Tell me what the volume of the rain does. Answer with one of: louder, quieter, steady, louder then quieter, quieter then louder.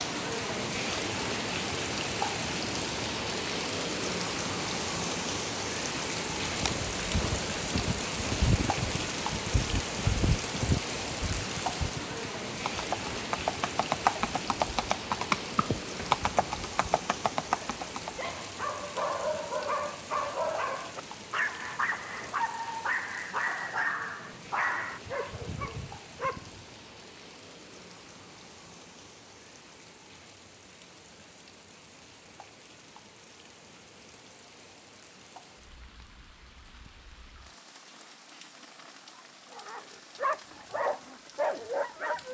quieter.